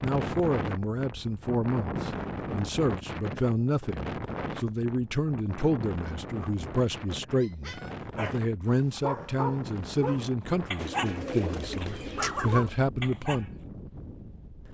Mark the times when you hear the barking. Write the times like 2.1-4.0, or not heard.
7.4-13.4.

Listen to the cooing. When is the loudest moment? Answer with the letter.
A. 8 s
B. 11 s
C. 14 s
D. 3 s
B.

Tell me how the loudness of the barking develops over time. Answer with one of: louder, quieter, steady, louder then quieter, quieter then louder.
louder.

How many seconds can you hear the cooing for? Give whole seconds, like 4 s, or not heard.
2 s.